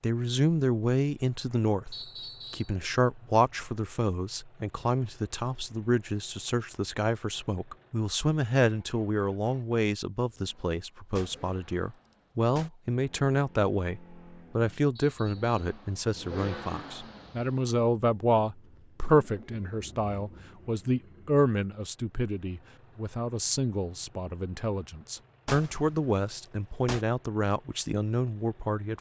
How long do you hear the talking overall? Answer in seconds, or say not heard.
29 s.